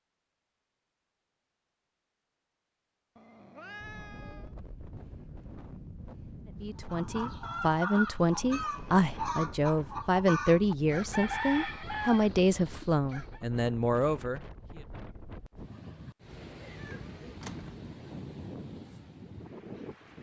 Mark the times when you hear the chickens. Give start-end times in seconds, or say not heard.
6.8-13.4.